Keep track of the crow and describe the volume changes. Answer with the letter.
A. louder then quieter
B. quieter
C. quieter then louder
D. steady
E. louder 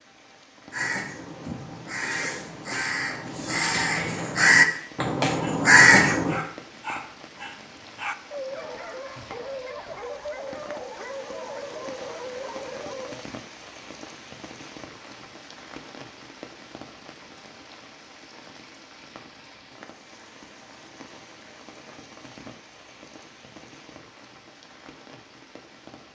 E.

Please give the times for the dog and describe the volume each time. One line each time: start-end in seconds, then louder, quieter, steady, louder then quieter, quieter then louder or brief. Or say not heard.
5.3-13.2 steady.